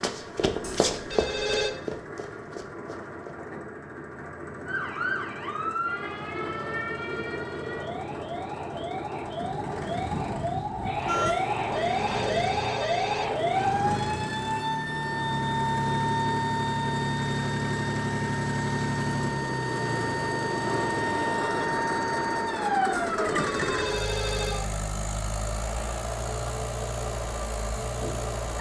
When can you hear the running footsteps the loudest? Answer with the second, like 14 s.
1 s.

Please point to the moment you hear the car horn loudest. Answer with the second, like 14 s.
11 s.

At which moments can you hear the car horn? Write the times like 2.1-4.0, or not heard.
9.4-11.3.